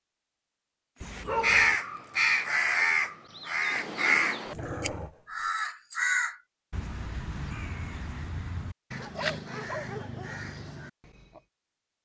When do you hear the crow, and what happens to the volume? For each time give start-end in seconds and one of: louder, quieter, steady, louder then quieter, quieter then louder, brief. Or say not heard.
1.1-11.4 quieter.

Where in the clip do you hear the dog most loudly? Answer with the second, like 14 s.
1 s.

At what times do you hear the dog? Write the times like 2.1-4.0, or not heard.
1.0-1.8, 4.5-5.5, 8.9-10.5.